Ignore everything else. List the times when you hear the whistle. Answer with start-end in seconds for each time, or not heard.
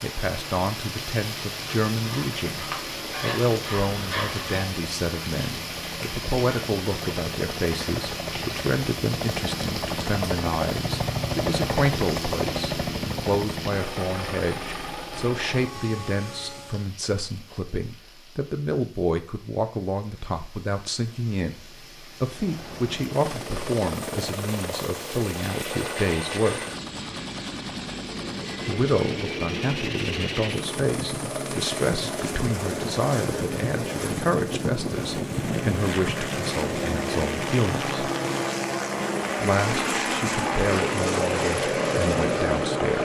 not heard.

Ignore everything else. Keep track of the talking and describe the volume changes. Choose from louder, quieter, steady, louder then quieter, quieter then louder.
steady.